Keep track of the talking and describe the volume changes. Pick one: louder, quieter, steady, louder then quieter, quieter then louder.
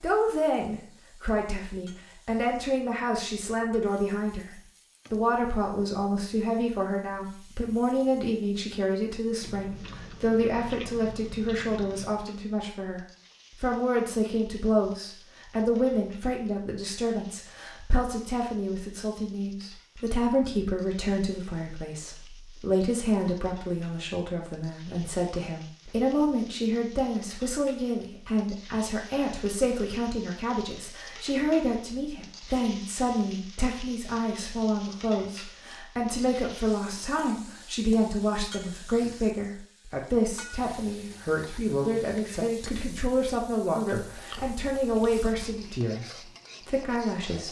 steady.